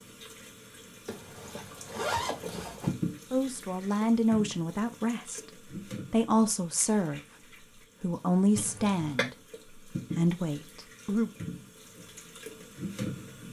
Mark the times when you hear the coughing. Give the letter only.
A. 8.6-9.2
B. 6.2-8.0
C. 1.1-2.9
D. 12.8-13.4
A.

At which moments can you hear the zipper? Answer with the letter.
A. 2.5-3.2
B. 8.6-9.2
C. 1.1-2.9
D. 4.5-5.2
C.